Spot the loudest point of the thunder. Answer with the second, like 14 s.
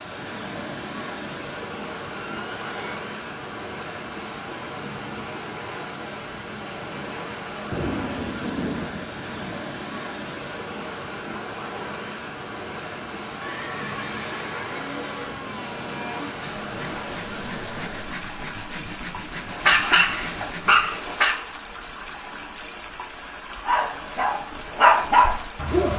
8 s.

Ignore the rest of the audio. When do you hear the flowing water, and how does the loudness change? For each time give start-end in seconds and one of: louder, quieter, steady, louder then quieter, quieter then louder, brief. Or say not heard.
0.0-25.9 steady.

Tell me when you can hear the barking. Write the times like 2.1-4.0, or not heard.
19.5-21.4, 23.6-25.9.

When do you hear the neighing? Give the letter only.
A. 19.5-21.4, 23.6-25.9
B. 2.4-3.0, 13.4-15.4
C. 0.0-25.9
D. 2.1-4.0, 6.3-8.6
B.